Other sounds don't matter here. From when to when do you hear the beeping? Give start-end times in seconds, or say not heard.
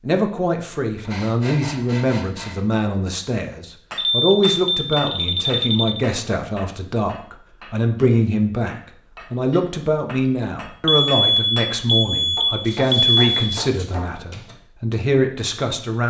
4.0-6.0, 10.8-13.3.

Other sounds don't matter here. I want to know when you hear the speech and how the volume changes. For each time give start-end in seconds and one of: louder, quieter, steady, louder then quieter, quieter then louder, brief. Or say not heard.
0.0-16.0 steady.